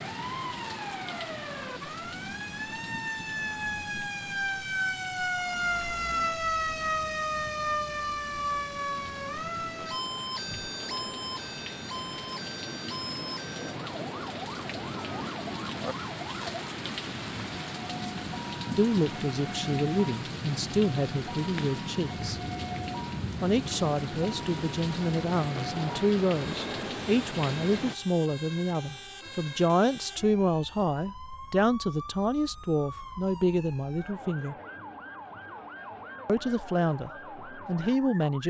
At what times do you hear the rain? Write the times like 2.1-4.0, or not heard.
0.0-27.9.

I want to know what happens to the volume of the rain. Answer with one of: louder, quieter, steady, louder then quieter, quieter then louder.
louder.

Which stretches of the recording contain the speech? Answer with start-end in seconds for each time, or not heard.
18.8-22.4, 23.4-34.5, 36.2-38.4.